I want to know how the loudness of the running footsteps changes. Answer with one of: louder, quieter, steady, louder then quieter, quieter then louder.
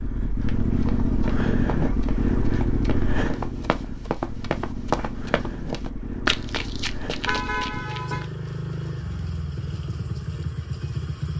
louder then quieter.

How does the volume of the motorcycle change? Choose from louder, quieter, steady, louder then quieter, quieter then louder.
quieter.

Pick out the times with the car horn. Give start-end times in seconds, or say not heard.
7.2-8.3.